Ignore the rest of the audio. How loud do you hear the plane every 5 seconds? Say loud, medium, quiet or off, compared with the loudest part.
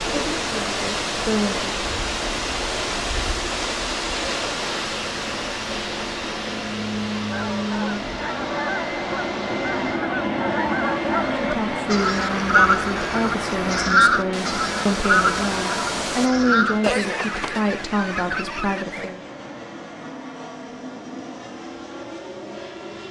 medium, loud, loud, medium, medium.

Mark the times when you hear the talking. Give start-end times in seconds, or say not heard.
0.1-1.6, 11.3-19.2.